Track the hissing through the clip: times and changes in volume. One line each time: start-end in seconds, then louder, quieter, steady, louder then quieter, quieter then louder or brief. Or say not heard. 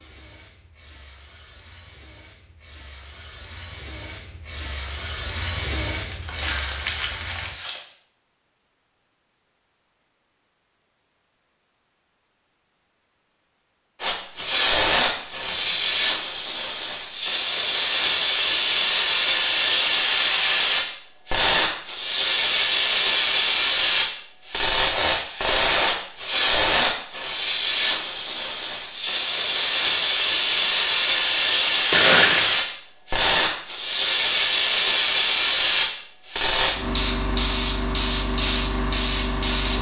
0.0-7.5 louder
14.0-39.7 steady.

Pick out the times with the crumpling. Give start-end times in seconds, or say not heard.
6.1-7.8, 14.3-16.1, 31.9-32.5.